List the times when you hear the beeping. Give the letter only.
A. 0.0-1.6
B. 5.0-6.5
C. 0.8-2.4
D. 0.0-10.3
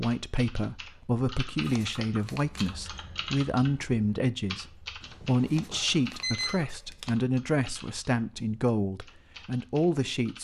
B.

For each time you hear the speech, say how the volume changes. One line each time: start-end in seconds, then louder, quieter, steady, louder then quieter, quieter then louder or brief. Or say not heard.
0.0-10.3 steady.